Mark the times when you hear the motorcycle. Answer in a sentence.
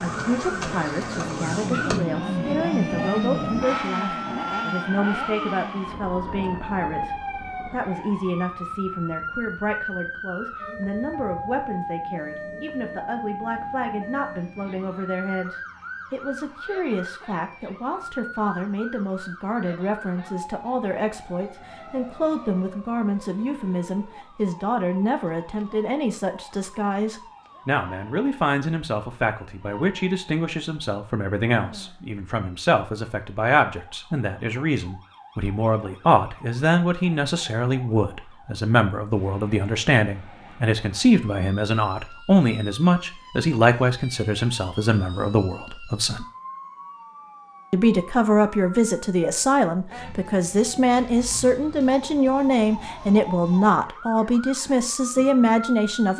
You can hear the motorcycle from 0.0 to 15.1 s.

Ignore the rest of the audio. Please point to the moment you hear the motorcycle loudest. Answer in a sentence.
The loudest moment of the motorcycle is at 3 seconds.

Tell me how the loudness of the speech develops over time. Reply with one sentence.
The loudness of the speech goes up.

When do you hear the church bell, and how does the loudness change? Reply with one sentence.
You can't hear the church bell here.